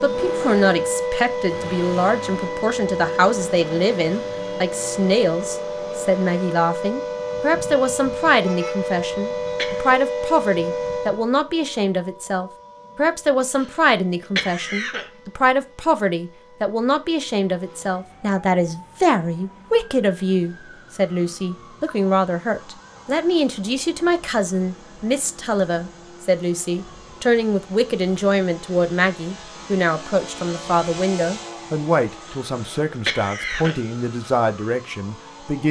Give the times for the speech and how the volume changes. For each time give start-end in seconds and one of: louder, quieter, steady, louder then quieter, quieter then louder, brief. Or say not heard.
0.0-35.6 steady.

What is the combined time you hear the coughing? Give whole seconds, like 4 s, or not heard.
4 s.